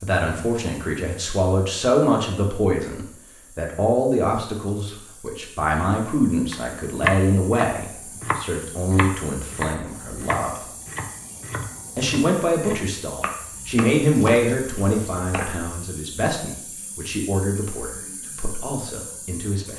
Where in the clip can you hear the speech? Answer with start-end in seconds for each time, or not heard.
0.0-10.6, 11.9-19.7.